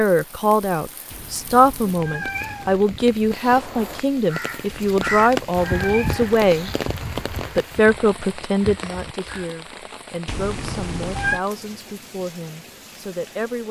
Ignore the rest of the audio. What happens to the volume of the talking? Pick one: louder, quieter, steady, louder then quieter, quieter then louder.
quieter.